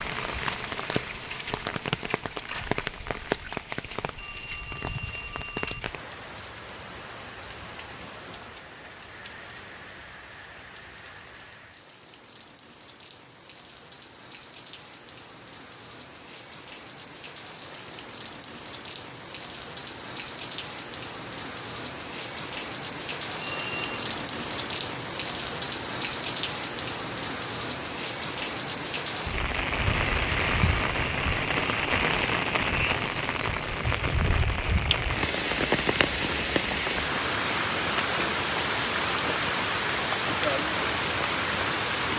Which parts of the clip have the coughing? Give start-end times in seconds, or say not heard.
not heard.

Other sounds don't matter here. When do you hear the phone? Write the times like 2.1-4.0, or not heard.
4.2-5.8, 23.4-23.9, 30.7-32.0.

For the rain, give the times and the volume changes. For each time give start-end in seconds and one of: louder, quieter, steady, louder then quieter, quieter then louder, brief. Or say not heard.
0.0-42.1 quieter then louder.